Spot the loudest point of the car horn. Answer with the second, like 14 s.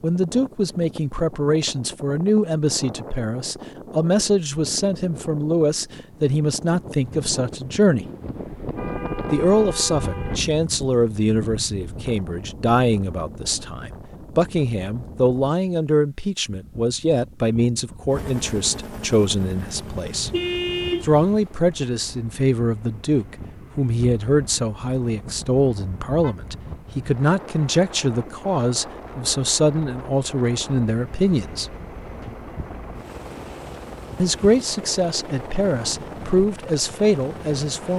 21 s.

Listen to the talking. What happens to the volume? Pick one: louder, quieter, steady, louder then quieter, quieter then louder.
steady.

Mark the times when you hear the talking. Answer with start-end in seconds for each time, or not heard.
0.0-8.1, 9.3-20.3, 21.0-31.7, 34.1-37.9.